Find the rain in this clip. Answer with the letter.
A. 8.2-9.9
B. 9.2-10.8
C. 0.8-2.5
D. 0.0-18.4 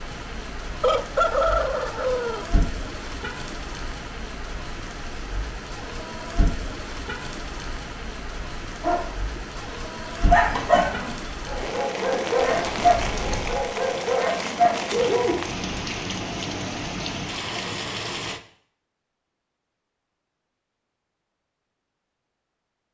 D.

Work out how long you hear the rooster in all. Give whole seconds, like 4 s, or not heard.
2 s.